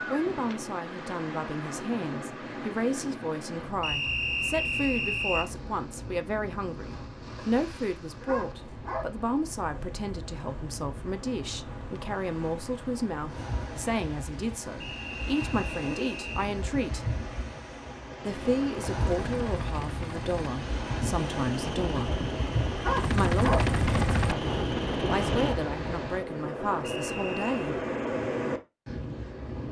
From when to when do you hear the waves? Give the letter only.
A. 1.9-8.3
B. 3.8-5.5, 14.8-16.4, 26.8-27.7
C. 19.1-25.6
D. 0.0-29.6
D.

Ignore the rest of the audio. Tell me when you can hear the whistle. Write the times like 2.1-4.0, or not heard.
3.8-5.5, 14.8-16.4, 26.8-27.7.